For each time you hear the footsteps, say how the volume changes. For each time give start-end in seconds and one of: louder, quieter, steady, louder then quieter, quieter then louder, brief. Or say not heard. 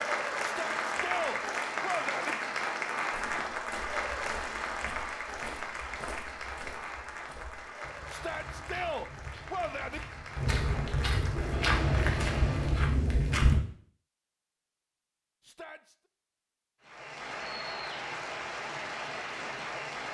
3.1-13.6 louder.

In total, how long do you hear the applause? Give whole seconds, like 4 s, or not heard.
16 s.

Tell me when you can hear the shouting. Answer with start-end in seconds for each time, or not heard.
0.4-2.4, 8.1-10.0, 15.4-15.9.